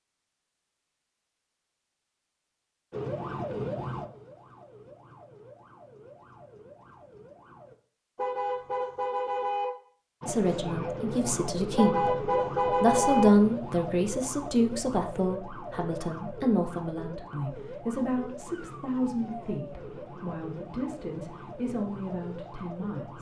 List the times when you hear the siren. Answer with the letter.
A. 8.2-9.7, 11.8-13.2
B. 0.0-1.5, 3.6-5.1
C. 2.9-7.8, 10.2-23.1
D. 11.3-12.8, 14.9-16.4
C.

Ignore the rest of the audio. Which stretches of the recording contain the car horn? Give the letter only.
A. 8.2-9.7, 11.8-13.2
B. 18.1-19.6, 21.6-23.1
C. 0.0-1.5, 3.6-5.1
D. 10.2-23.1
A.